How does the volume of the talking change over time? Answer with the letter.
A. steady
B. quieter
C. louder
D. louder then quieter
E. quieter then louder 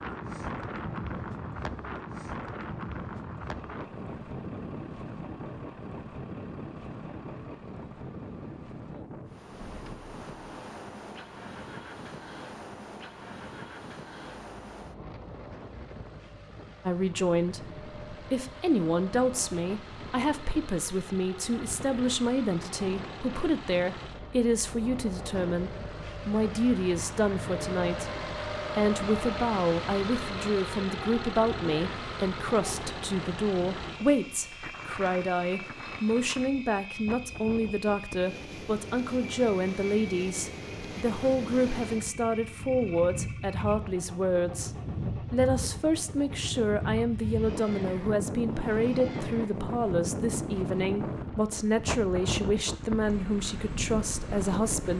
A.